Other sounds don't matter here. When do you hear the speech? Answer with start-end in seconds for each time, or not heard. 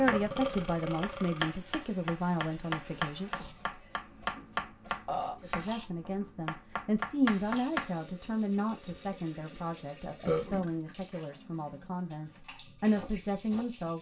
0.0-3.3, 5.4-13.9.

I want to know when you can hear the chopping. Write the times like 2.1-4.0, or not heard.
0.0-8.0, 12.3-13.8.